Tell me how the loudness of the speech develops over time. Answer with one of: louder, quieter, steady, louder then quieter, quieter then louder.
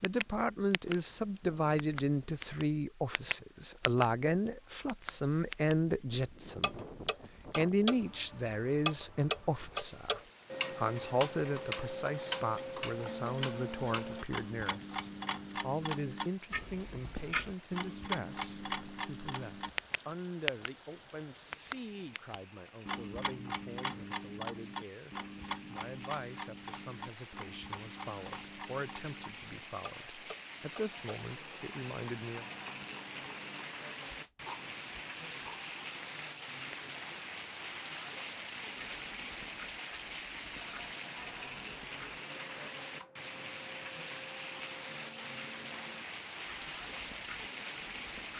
quieter.